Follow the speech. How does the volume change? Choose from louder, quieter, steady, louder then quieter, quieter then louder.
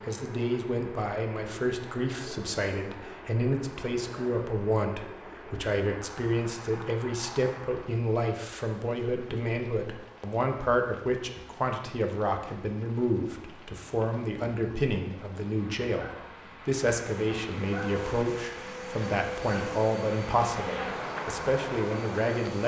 steady.